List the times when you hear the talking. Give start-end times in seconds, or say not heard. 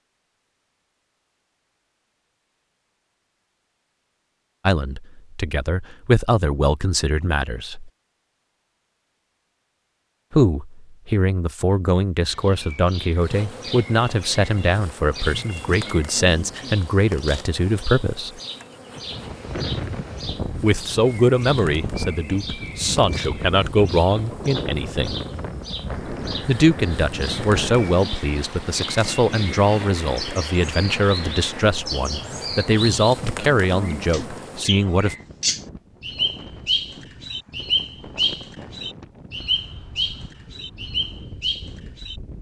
4.7-7.9, 10.3-18.4, 20.6-25.2, 26.4-35.1.